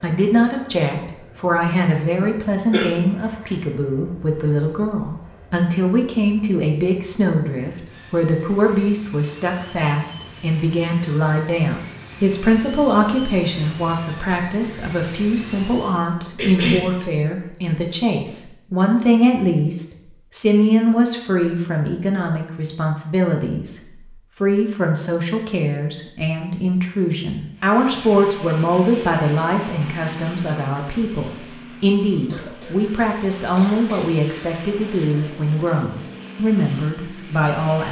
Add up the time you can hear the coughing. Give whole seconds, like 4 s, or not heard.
3 s.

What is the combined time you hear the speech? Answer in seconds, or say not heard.
37 s.